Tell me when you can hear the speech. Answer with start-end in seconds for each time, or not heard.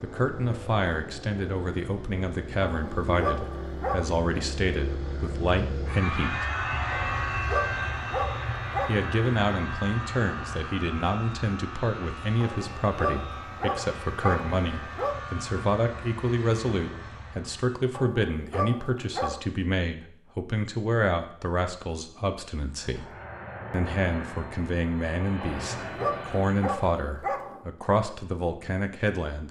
0.0-6.5, 8.8-23.1, 23.7-29.4.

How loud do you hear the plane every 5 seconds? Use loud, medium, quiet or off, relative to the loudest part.
medium, loud, medium, medium, medium, medium.